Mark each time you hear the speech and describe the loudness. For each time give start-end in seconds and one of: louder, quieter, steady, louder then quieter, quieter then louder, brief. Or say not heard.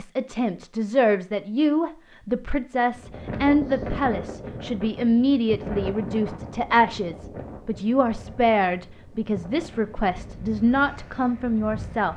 0.0-12.1 steady.